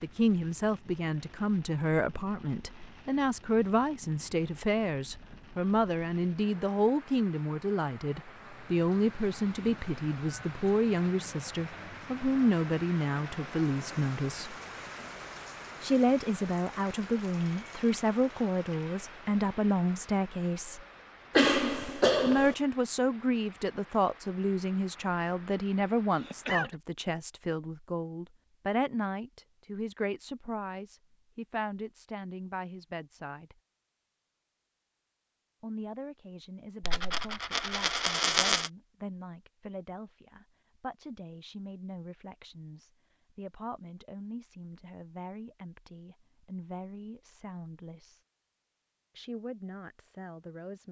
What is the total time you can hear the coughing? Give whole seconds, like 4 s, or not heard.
2 s.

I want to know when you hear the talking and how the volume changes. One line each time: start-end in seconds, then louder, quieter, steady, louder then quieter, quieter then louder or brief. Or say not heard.
0.0-14.6 steady
15.8-20.8 steady
22.2-33.5 quieter
35.6-48.2 steady
49.1-50.8 brief.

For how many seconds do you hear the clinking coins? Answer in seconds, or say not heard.
2 s.